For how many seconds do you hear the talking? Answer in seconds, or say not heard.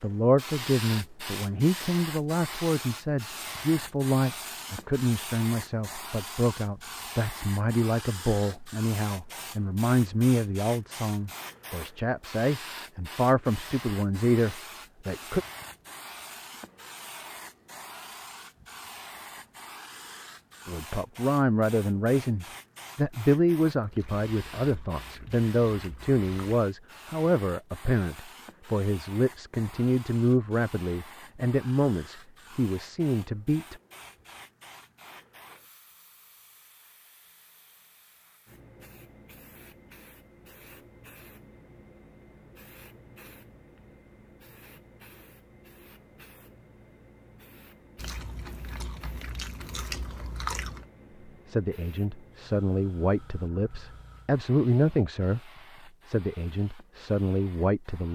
35 s.